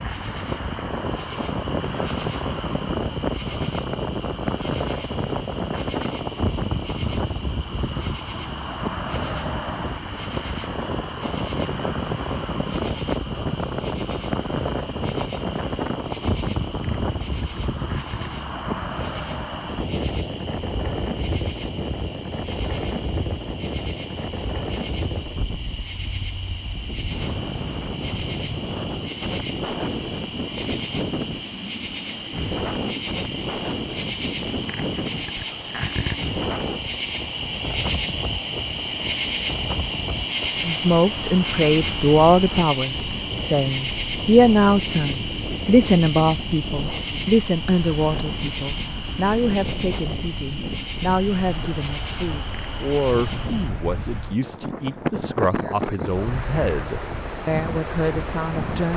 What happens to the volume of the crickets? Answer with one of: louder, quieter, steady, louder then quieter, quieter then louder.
louder then quieter.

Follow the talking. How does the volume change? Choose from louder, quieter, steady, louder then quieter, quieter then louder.
quieter.